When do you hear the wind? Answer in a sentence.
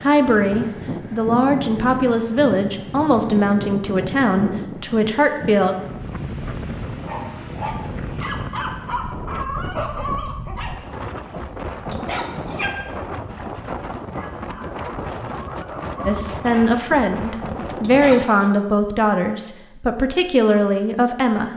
You can hear the wind from 0.0 to 18.2 s.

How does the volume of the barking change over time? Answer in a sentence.
The volume of the barking goes down, then up.